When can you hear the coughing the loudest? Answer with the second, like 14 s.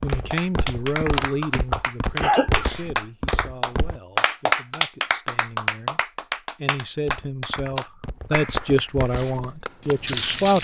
2 s.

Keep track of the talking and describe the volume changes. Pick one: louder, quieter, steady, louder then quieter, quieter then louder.
quieter then louder.